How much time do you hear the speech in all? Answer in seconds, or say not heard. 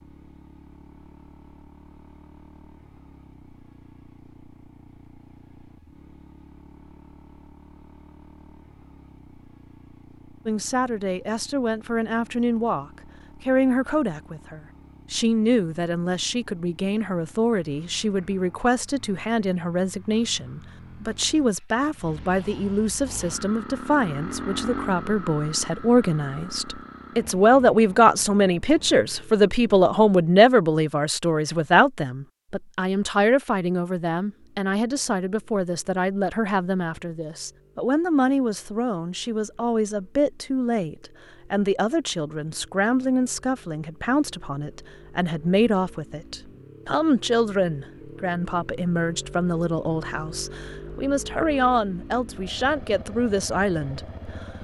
44 s.